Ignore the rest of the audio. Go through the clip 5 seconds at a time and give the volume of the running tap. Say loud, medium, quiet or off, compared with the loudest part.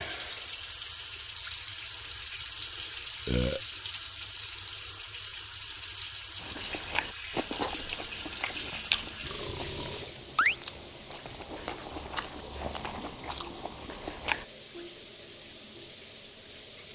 loud, loud, medium, medium.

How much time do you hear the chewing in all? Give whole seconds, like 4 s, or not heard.
8 s.